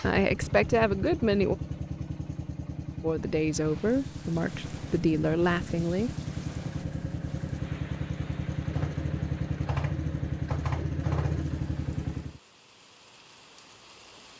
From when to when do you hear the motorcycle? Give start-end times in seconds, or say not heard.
0.0-12.4.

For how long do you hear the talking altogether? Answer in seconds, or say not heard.
5 s.